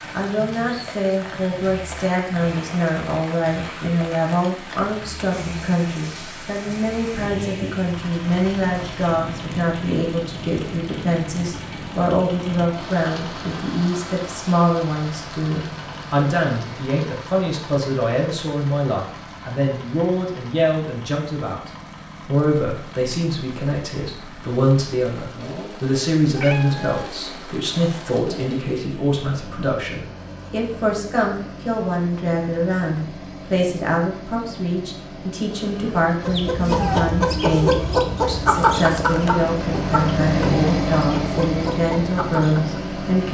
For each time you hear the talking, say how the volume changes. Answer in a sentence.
You can hear the talking from 0.1 to 43.2 s, at a steady volume.